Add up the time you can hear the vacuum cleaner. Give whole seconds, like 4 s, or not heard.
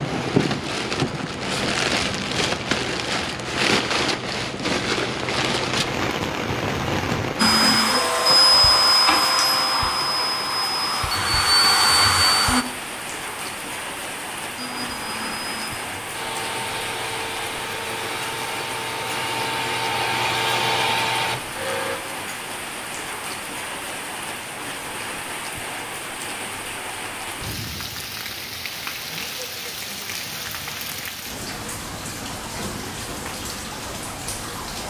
13 s.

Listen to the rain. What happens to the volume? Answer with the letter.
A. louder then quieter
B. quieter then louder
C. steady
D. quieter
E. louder
D.